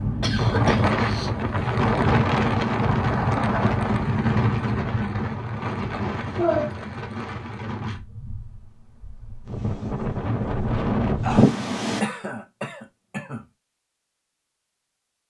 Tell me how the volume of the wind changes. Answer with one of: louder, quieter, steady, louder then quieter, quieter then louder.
quieter then louder.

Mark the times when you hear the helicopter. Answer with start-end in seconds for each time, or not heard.
not heard.